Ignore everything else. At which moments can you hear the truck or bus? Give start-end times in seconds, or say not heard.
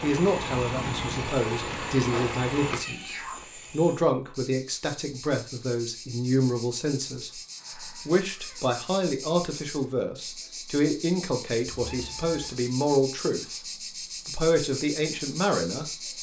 0.0-2.8.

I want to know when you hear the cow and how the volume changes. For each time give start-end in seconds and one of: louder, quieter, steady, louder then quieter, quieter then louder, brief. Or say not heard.
not heard.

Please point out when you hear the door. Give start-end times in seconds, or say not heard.
not heard.